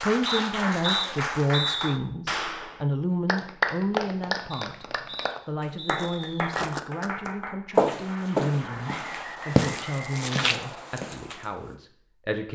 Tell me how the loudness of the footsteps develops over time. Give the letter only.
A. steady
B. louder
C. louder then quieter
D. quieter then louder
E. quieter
C.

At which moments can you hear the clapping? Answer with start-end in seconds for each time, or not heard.
0.0-9.1.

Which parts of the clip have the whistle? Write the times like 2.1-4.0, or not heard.
0.2-2.0, 4.5-6.5, 8.8-10.8.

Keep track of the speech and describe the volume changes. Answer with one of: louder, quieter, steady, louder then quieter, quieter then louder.
quieter.